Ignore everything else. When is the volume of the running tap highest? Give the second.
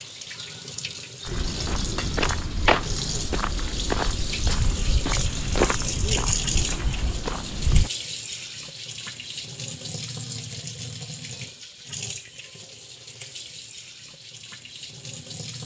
6 s.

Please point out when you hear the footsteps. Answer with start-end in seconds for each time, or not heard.
1.2-7.9.